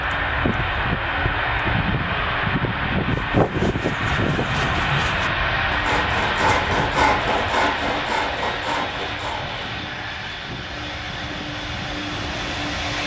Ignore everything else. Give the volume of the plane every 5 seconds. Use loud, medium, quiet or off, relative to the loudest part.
loud, loud, medium.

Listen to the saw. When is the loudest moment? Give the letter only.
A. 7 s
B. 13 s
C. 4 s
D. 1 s
A.